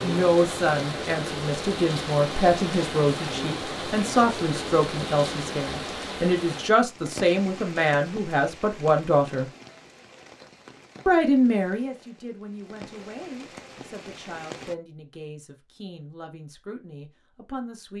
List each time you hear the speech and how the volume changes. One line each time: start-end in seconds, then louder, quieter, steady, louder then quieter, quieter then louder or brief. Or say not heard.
0.0-9.4 steady
11.1-17.9 quieter.